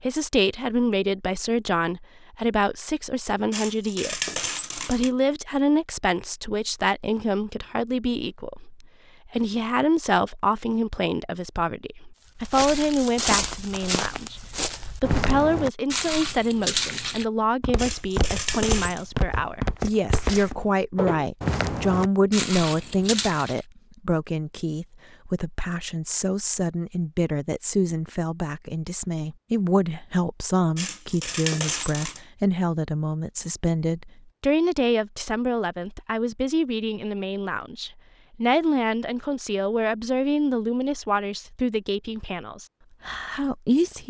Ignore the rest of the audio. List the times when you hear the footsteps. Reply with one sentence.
You can hear the footsteps from 12.3 to 23.6 s.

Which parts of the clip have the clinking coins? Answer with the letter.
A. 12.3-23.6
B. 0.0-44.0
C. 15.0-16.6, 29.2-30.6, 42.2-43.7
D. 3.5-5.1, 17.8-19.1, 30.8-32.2
D.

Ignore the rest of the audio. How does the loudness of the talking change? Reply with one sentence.
The volume of the talking stays about the same.